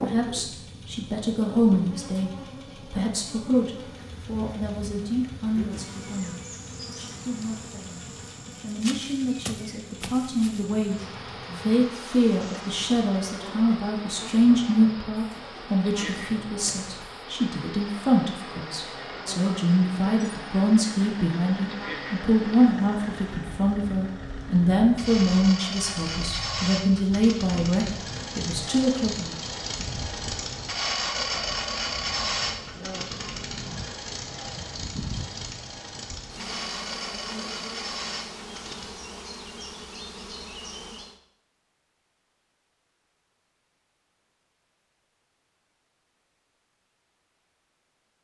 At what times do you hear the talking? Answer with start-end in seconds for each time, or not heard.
0.0-29.4.